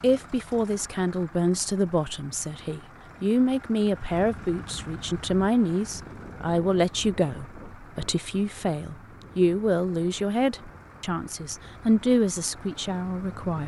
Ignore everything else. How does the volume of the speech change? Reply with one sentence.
The volume of the speech stays about the same.